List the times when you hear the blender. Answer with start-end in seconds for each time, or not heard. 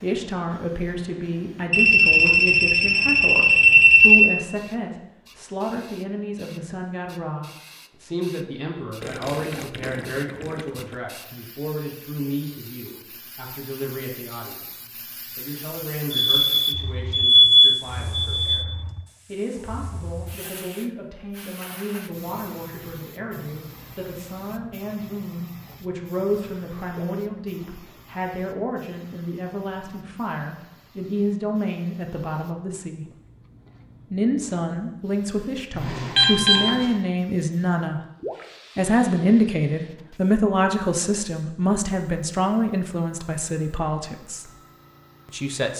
not heard.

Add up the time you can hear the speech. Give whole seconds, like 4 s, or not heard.
43 s.